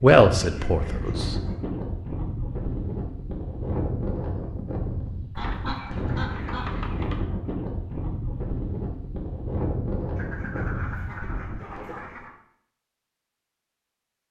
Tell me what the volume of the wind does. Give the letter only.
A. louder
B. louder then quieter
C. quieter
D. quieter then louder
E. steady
E.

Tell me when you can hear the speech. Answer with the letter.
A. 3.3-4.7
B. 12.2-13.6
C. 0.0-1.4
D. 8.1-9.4
C.